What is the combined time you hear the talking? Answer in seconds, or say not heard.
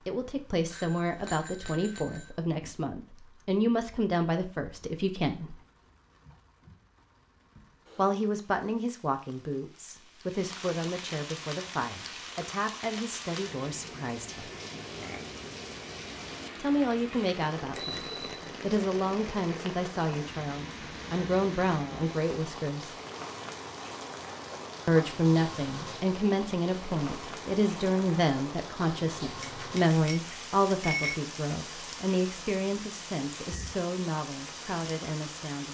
29 s.